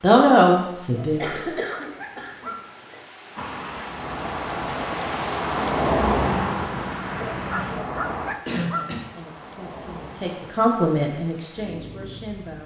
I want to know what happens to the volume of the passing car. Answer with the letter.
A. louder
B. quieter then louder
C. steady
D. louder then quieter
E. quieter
D.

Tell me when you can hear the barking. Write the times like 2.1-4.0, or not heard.
0.9-2.6, 7.2-8.8.